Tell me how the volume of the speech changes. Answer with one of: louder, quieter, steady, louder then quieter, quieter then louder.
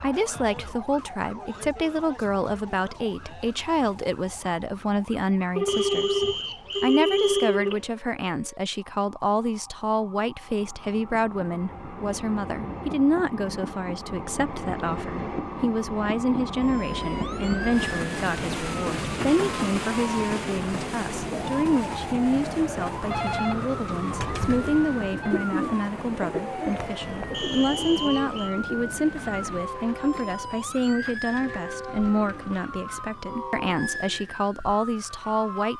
steady.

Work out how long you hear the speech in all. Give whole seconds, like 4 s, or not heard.
36 s.